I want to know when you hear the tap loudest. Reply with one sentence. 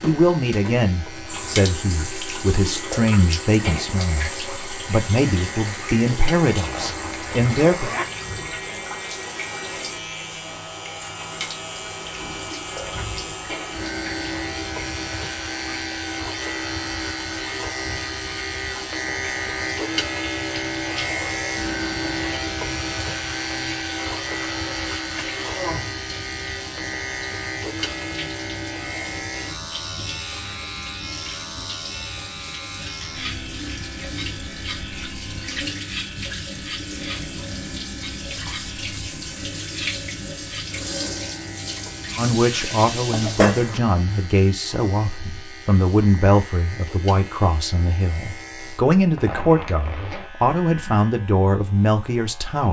The loudest moment of the tap is at 43 seconds.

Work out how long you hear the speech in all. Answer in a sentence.
You can hear the speech for 18 seconds altogether.